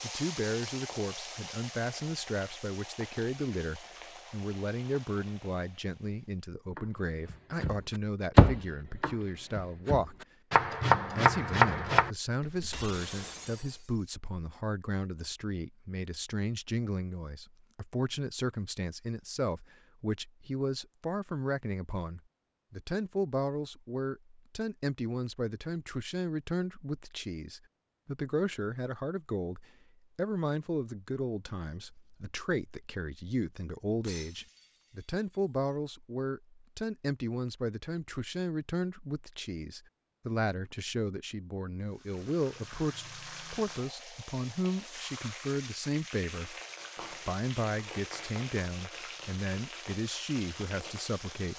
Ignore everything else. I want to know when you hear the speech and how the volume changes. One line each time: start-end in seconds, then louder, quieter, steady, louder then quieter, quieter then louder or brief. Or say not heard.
0.0-10.2 steady
11.2-51.5 steady.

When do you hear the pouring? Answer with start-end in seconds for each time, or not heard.
not heard.